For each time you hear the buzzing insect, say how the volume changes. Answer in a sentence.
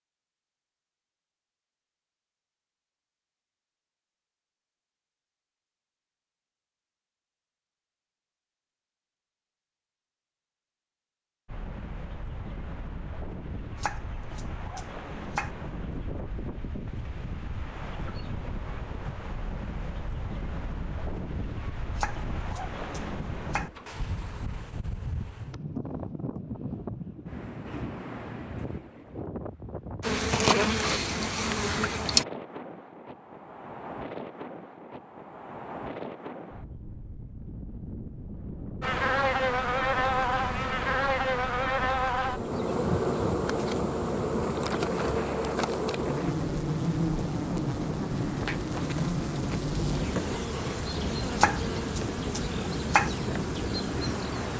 The buzzing insect can be heard briefly from 30.0 to 32.2 s; and from 38.8 to 54.5 s, getting quieter.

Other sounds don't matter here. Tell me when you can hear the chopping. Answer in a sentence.
You can hear the chopping from 13.8 to 15.5 s, from 21.9 to 23.7 s and from 51.4 to 53.1 s.